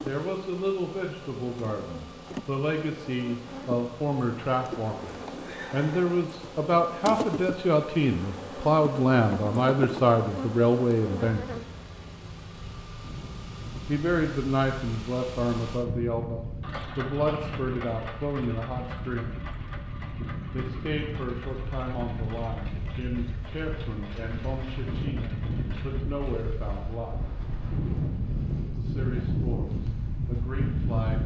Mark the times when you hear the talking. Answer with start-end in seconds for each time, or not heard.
0.0-11.6, 13.8-19.4, 20.5-27.1, 28.8-31.2.